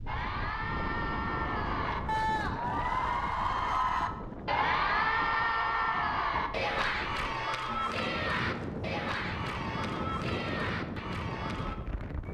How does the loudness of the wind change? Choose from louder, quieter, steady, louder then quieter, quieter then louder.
quieter then louder.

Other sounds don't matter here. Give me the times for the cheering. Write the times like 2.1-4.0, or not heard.
0.1-11.8.